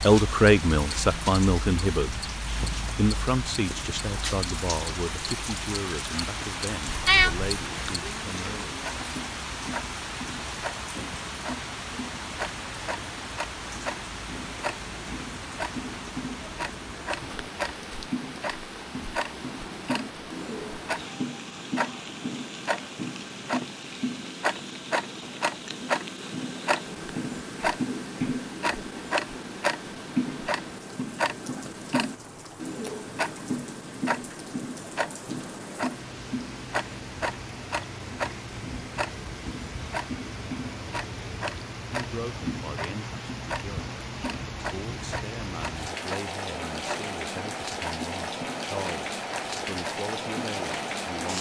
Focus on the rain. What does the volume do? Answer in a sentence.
The loudness of the rain goes down, then up.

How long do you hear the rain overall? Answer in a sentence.
You can hear the rain for 51 seconds altogether.